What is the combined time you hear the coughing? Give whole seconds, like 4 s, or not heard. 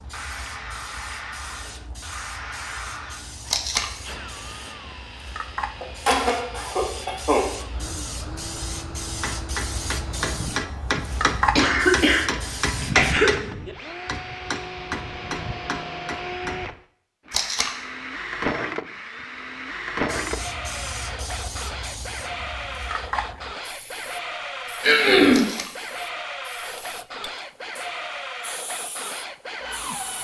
4 s.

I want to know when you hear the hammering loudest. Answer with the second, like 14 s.
13 s.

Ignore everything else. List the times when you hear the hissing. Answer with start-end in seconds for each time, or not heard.
0.0-13.2, 20.1-30.1.